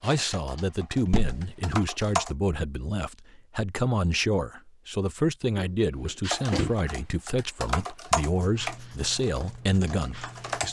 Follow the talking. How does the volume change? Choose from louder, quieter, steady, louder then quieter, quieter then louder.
steady.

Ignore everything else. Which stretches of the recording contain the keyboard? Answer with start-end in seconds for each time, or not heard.
0.0-2.4, 6.2-10.6.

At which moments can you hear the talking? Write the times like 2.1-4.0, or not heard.
0.0-10.6.